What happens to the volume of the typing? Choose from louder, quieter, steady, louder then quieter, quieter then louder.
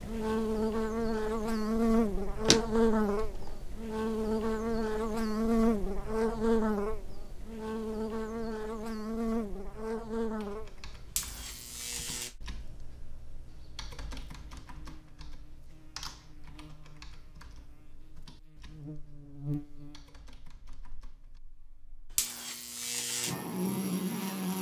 quieter.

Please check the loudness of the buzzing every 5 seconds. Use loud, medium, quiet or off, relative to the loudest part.
loud, loud, medium, quiet, medium.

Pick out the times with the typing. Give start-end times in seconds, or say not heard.
10.3-21.4.